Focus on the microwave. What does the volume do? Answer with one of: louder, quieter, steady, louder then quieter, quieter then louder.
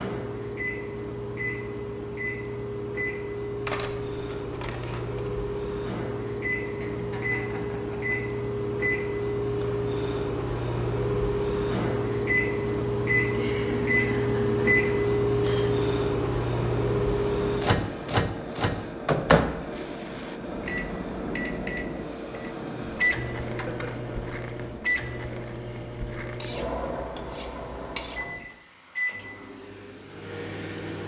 louder then quieter.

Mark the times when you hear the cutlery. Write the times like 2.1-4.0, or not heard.
3.6-5.4, 26.4-28.2.